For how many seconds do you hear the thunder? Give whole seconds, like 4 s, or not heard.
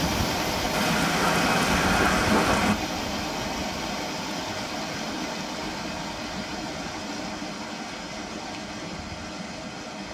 2 s.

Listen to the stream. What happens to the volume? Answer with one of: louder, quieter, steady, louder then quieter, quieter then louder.
quieter.